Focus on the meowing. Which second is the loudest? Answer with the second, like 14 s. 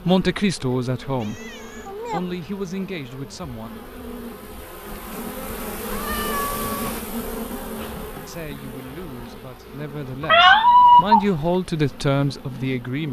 11 s.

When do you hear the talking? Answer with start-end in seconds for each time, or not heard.
0.0-3.7, 8.2-13.0.